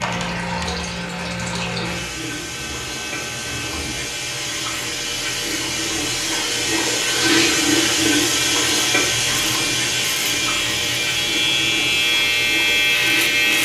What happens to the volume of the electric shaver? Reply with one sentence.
The volume of the electric shaver goes up.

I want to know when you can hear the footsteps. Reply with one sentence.
The footsteps can't be heard in this clip.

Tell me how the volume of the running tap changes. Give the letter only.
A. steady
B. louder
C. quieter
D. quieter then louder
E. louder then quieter
E.